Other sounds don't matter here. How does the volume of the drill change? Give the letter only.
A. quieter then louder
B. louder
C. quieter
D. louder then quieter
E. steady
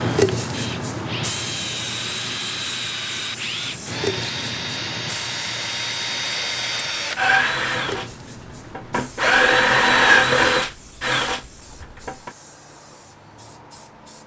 B.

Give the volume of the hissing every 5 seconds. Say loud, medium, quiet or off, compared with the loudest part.
loud, medium, quiet.